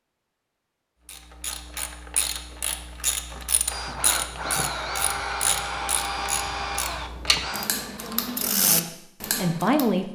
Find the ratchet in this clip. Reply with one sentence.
The ratchet can be heard from 1.1 to 9.9 s.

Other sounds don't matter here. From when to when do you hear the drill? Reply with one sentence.
The drill can be heard from 3.6 to 7.7 s.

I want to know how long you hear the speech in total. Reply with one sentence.
You can hear the speech for 2 seconds altogether.